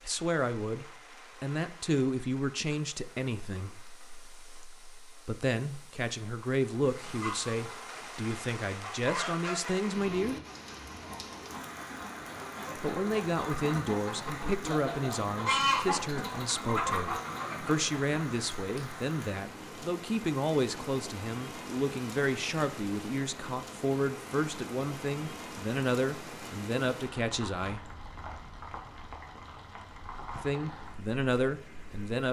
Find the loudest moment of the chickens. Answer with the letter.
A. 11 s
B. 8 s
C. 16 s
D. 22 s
C.